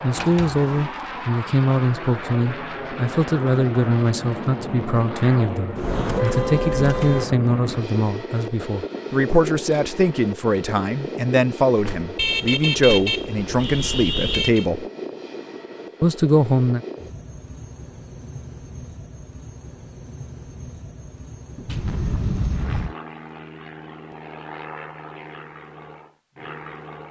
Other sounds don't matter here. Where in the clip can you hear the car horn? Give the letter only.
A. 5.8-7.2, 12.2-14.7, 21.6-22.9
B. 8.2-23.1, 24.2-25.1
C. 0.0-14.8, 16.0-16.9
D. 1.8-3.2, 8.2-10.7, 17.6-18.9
A.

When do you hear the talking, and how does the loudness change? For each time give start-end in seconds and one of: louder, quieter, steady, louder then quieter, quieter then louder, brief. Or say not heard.
0.0-14.8 steady
16.0-16.9 brief.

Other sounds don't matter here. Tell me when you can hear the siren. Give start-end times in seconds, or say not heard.
not heard.